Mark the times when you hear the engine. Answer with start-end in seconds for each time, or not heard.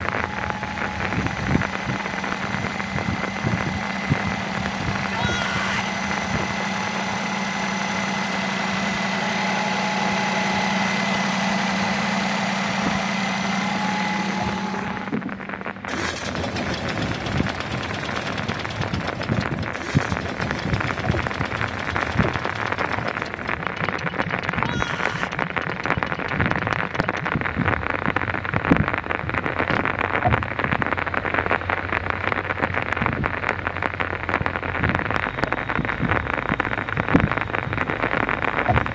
0.0-38.9.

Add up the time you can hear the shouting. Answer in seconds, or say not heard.
2 s.